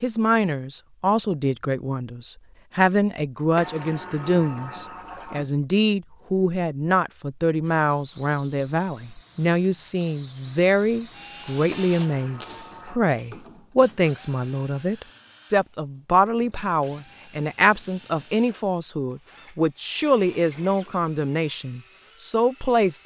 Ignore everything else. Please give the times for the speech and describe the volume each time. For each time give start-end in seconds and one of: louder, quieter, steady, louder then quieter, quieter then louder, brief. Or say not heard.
0.0-23.0 steady.